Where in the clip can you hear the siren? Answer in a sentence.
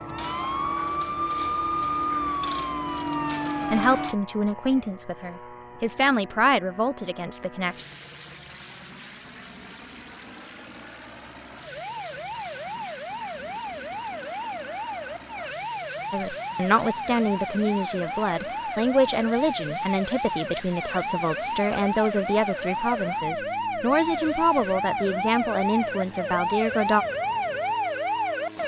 You can hear the siren from 0.0 to 4.2 s and from 11.6 to 28.6 s.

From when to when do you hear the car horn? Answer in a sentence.
You can't hear the car horn here.